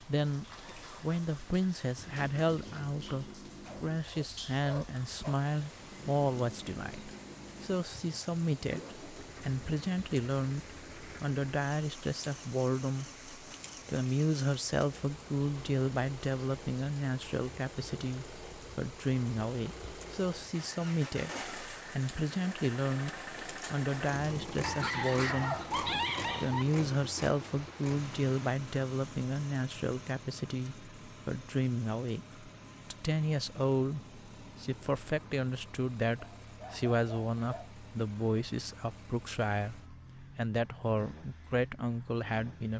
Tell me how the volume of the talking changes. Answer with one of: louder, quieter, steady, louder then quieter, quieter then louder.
steady.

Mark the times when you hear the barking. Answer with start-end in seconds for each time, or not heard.
3.6-5.3, 24.6-26.6, 36.1-37.7.